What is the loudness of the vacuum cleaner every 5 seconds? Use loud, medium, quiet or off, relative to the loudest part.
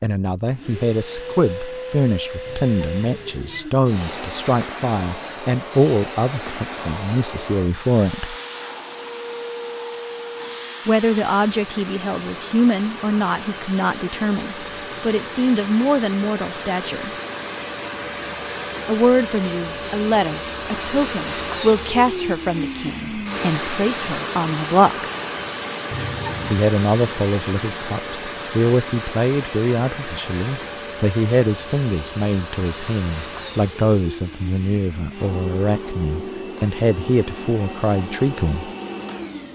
medium, medium, medium, loud, loud, loud, medium, medium.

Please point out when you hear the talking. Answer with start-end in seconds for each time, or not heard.
0.0-8.3, 10.8-17.1, 18.9-25.1, 26.4-38.7.